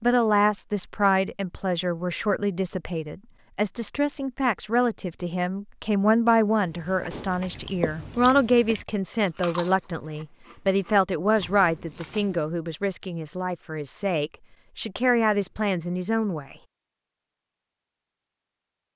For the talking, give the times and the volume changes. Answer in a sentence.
The talking can be heard from 0.0 to 16.6 s, at a steady volume.